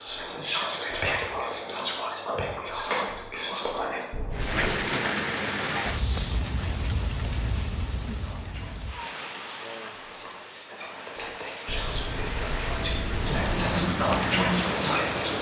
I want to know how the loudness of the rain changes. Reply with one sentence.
The loudness of the rain goes down, then up.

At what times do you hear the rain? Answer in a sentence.
The rain can be heard from 4.3 to 15.3 s.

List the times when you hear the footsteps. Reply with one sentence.
The footsteps can't be heard in this clip.